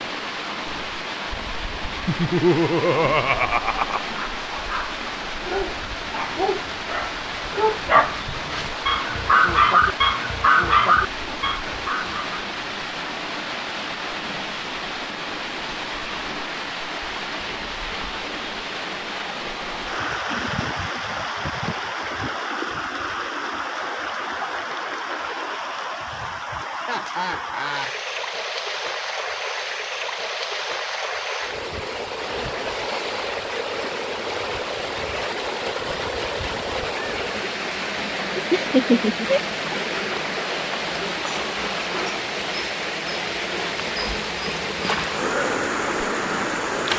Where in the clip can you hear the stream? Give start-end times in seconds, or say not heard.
0.0-46.9.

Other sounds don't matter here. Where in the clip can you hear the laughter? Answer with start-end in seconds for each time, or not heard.
2.0-4.0, 26.8-27.9, 38.5-39.4.